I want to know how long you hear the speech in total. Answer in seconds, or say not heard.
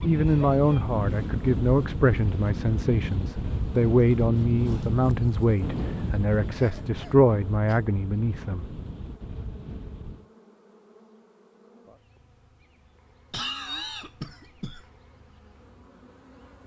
9 s.